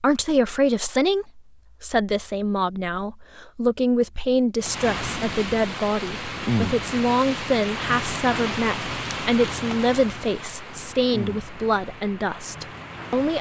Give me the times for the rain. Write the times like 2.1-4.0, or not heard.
4.6-13.3.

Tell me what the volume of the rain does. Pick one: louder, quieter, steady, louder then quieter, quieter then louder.
quieter.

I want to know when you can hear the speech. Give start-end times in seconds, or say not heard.
0.0-13.3.